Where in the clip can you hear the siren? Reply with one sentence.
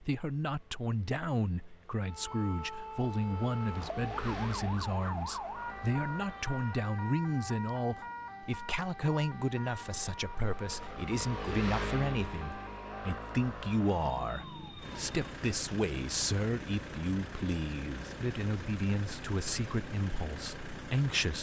You can hear the siren from 2.0 to 15.2 s.